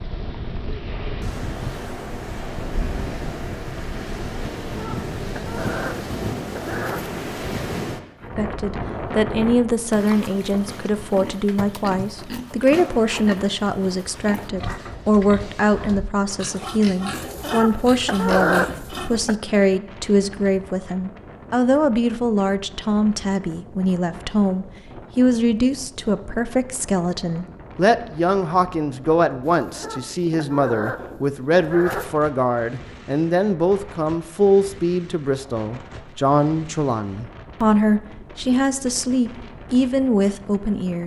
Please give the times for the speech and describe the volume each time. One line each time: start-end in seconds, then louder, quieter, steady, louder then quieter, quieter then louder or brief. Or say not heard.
8.3-41.0 steady.